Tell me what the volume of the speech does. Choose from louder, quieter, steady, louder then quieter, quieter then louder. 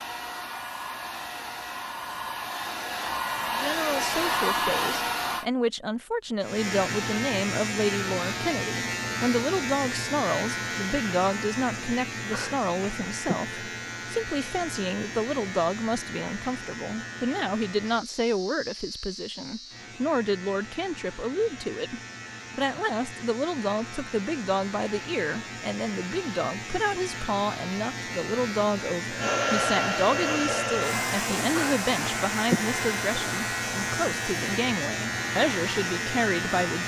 steady.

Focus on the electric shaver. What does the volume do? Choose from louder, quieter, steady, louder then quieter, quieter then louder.
quieter then louder.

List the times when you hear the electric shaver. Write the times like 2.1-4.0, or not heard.
6.4-36.8.